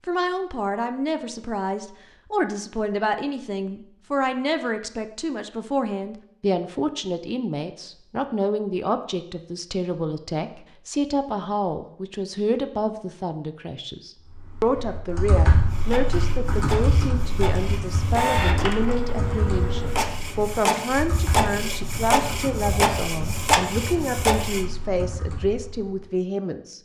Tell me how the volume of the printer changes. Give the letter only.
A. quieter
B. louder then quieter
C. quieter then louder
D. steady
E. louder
E.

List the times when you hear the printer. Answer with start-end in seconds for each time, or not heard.
15.7-24.6.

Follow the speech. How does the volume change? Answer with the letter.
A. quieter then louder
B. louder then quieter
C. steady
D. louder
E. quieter
C.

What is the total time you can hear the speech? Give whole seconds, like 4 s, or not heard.
27 s.